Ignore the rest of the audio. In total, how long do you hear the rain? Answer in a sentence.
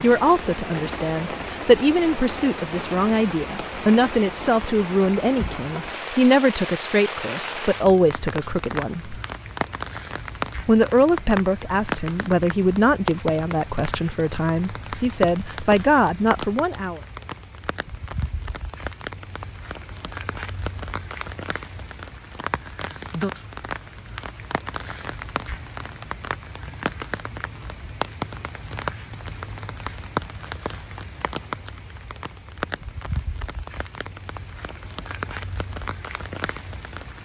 The rain can be heard for 37 seconds in total.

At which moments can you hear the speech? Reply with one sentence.
You can hear the speech from 0.0 to 9.2 s and from 10.7 to 17.0 s.